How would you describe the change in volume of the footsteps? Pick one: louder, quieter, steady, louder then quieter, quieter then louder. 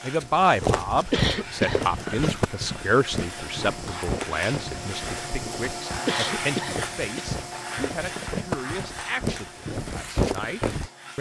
quieter then louder.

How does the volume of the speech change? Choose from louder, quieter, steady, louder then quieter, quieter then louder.
quieter.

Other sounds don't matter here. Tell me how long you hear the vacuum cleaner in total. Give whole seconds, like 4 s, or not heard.
11 s.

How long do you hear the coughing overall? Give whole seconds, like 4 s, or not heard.
3 s.